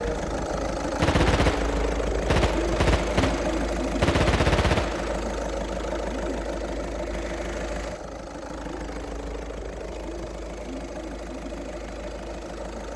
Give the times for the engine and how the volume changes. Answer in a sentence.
You can hear the engine from 0.0 to 12.9 s, getting quieter.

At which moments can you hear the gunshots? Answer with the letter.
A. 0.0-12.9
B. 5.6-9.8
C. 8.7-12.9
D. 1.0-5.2
D.